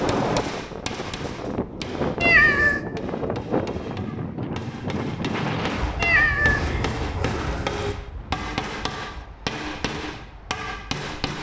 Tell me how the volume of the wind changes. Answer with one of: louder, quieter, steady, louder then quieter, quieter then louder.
quieter.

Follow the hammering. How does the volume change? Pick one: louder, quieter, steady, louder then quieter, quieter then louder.
quieter then louder.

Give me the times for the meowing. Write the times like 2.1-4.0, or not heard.
2.2-2.8, 6.0-8.0.